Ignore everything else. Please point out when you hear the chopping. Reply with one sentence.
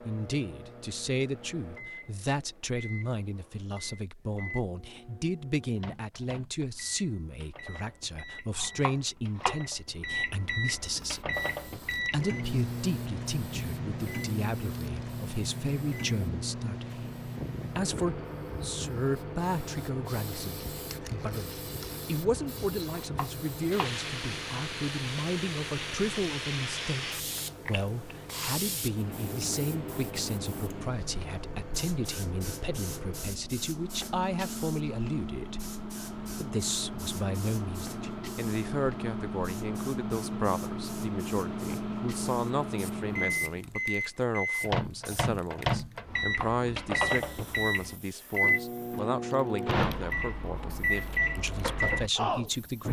The chopping can be heard from 8.6 to 9.6 s, from 23.0 to 23.9 s and from 46.1 to 47.1 s.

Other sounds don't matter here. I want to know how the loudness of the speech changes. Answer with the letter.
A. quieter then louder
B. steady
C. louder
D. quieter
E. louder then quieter
B.